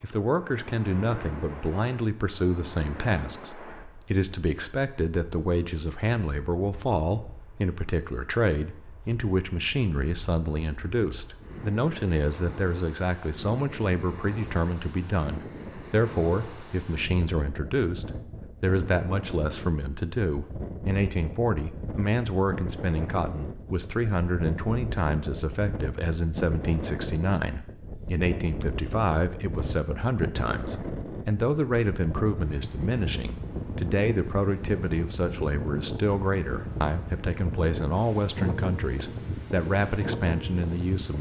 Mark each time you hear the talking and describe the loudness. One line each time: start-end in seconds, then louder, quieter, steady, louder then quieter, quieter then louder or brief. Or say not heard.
0.0-41.1 steady.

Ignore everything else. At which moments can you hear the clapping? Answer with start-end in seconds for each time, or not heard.
not heard.